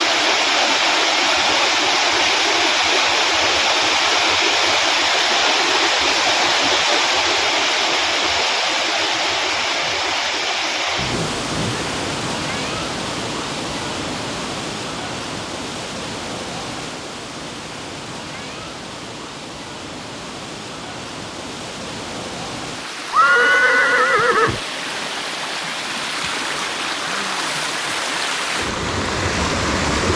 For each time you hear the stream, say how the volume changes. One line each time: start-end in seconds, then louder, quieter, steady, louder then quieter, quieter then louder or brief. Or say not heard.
0.0-30.1 quieter then louder.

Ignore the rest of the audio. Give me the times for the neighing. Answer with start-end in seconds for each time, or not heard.
10.9-11.9, 23.1-24.6.